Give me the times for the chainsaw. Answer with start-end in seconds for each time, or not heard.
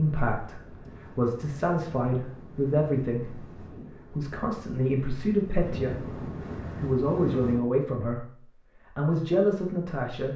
not heard.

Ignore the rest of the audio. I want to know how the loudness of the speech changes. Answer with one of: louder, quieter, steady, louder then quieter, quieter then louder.
steady.